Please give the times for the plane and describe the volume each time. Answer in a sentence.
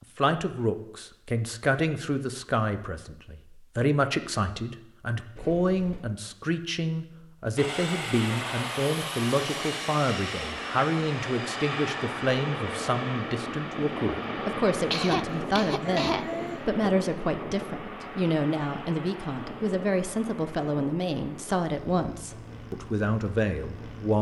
You can hear the plane from 7.5 to 24.1 s, getting quieter.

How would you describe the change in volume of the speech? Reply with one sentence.
The loudness of the speech stays about the same.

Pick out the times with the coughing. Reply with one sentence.
You can hear the coughing from 14.9 to 16.6 s.